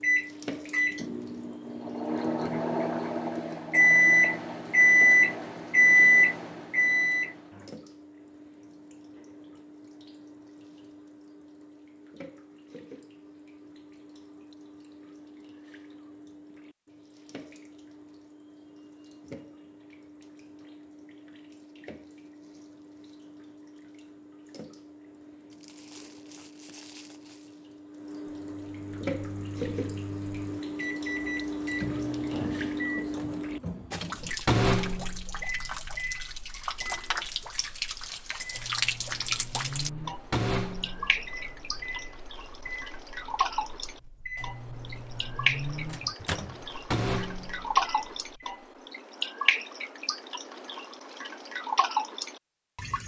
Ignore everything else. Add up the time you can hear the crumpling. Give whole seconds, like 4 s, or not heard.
2 s.